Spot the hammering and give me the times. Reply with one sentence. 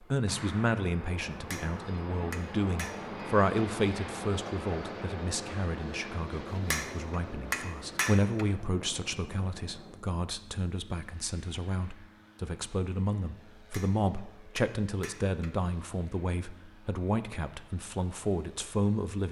You can hear the hammering from 1.3 to 3.2 s, from 6.5 to 8.4 s and from 13.6 to 15.5 s.